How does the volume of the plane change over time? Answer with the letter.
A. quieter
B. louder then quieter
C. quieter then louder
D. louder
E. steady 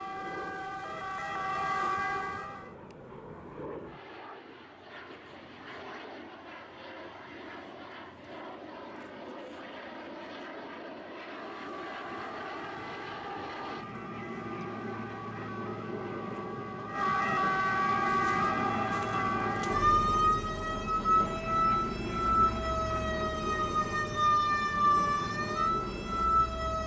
D.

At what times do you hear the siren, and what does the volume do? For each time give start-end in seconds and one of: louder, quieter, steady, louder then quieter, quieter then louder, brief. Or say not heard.
0.0-2.8 brief
11.3-26.8 louder.